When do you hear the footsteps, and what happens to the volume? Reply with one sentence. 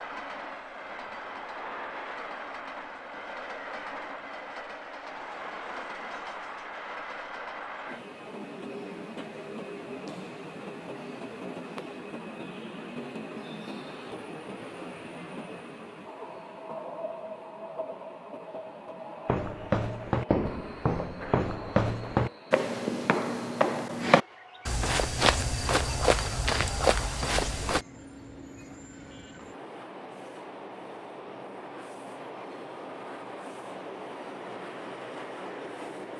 The footsteps can be heard from 19.2 to 27.9 s, at a steady volume.